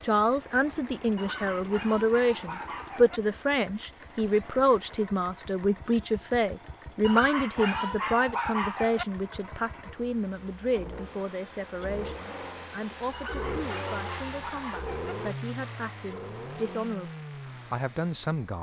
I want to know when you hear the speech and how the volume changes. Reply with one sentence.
You can hear the speech from 0.0 to 17.1 s, getting quieter; and briefly from 17.7 to 18.5 s.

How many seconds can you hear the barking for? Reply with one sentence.
The barking can be heard for 6 seconds in total.